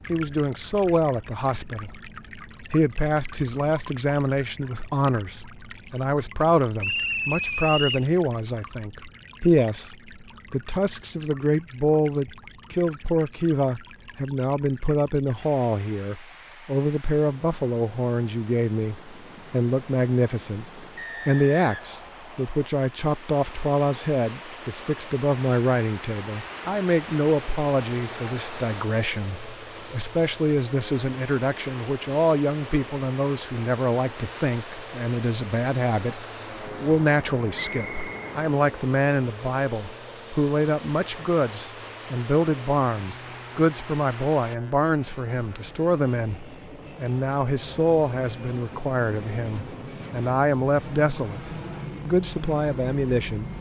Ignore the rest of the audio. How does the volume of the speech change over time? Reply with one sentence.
The loudness of the speech stays about the same.